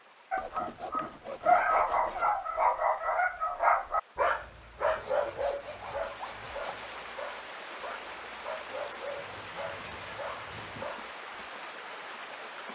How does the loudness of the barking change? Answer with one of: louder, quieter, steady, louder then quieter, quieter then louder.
quieter.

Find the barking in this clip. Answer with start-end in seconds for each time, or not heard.
0.3-11.4.